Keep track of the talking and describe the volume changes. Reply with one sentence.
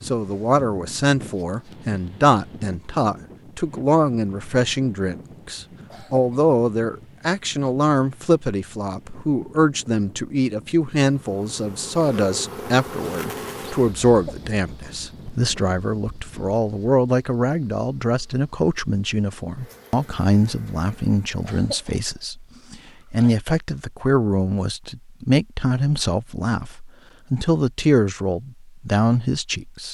The volume of the talking stays about the same.